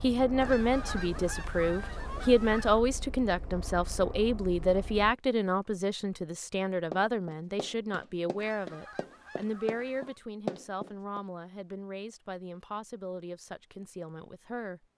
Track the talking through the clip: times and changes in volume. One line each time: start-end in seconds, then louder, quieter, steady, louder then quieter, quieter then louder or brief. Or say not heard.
0.0-14.8 quieter.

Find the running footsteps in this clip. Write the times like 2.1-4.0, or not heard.
6.9-11.2.